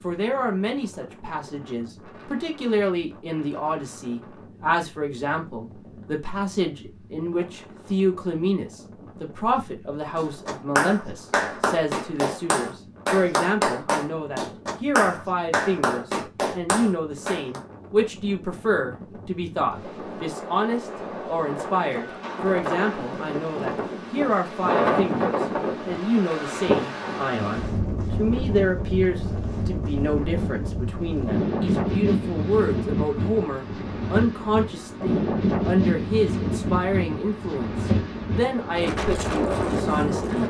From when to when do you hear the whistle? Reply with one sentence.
The whistle can't be heard in this clip.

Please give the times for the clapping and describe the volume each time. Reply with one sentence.
The clapping can be heard from 10.2 to 17.6 s, at a steady volume.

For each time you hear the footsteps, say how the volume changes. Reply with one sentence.
The footsteps can't be heard in this clip.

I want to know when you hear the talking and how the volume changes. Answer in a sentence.
You can hear the talking from 0.0 to 40.4 s, at a steady volume.